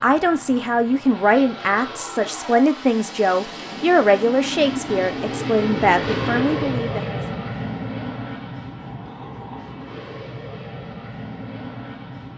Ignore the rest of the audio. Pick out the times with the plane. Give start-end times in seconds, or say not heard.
0.0-12.3.